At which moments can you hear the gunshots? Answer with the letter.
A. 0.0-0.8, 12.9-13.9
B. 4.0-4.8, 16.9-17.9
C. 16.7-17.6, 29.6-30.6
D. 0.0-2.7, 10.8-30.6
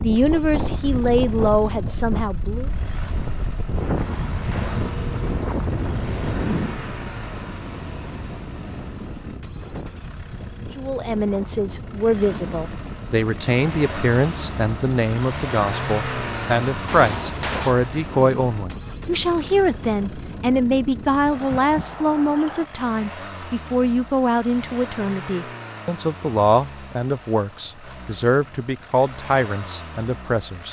B.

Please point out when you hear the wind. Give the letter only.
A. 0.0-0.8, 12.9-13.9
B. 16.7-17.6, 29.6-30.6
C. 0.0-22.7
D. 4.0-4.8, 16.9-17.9
C.